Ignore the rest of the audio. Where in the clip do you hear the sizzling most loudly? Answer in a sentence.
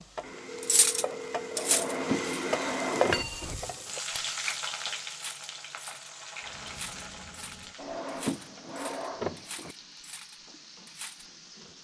The volume of the sizzling peaks at 3 seconds.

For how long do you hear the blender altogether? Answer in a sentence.
You can hear the blender for 3 seconds altogether.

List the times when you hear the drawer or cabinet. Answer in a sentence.
You can hear the drawer or cabinet from 1.6 to 3.5 s and from 7.8 to 9.8 s.